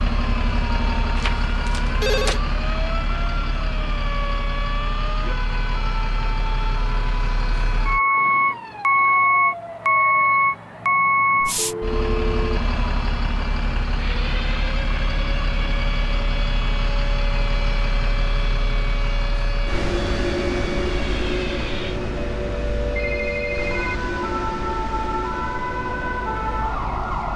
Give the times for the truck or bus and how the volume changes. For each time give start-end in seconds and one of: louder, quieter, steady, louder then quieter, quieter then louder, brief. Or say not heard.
0.0-27.3 louder then quieter.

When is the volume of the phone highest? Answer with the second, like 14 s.
2 s.